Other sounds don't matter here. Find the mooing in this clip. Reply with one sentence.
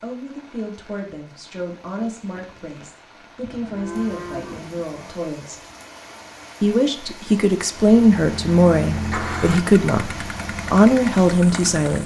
You can hear the mooing from 3.4 to 5.2 s.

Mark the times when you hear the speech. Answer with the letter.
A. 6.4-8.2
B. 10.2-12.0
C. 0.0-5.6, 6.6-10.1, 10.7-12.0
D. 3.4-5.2
C.